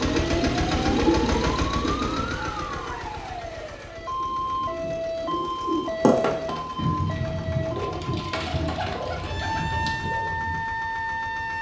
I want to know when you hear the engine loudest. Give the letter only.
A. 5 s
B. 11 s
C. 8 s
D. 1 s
D.